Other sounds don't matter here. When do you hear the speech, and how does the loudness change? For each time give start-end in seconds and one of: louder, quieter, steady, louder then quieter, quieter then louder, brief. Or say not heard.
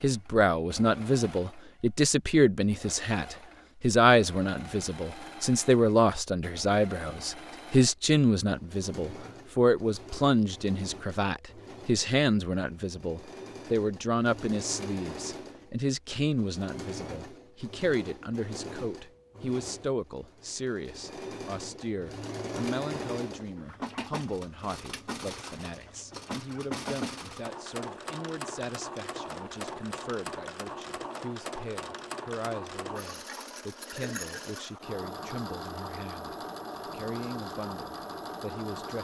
0.0-38.9 quieter.